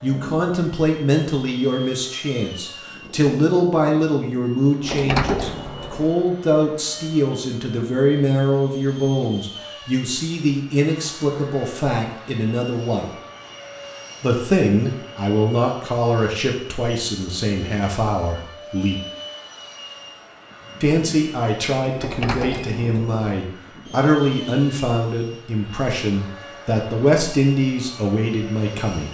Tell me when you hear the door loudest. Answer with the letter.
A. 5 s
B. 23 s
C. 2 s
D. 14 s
A.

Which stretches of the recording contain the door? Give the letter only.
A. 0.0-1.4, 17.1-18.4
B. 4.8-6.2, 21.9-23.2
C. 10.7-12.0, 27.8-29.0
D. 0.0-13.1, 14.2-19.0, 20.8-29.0
B.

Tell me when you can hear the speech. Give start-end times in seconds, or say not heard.
0.0-13.1, 14.2-19.0, 20.8-29.0.